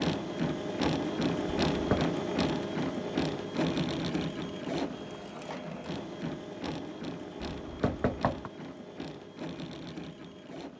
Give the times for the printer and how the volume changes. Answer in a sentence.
You can hear the printer from 0.0 to 10.7 s, getting quieter.